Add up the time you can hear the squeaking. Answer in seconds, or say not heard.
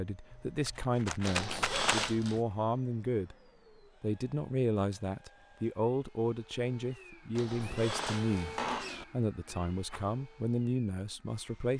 3 s.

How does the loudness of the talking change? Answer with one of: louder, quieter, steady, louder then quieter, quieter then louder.
steady.